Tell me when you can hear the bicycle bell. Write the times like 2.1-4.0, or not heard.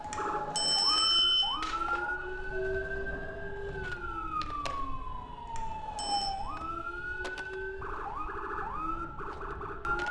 0.1-1.8, 5.5-6.3.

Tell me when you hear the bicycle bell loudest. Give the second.
1 s.